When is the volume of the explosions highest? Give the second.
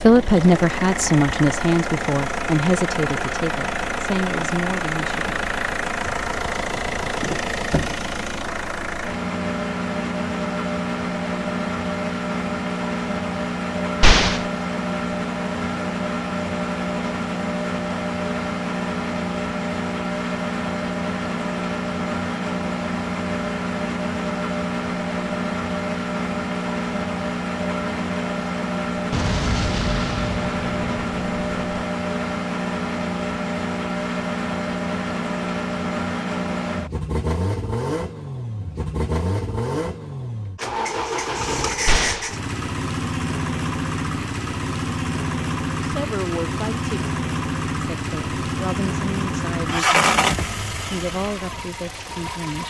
14 s.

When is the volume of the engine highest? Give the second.
50 s.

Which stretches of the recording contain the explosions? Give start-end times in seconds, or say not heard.
14.0-14.4, 29.1-31.9, 41.9-42.3.